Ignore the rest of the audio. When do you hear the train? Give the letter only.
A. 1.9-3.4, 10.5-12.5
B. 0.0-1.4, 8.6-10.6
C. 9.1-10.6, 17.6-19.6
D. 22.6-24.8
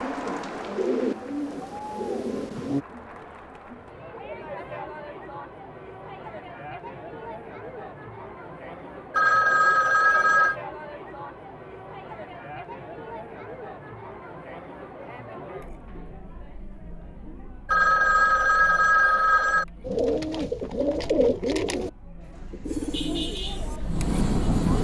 D.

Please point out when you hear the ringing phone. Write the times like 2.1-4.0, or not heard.
9.1-10.6, 17.6-19.6.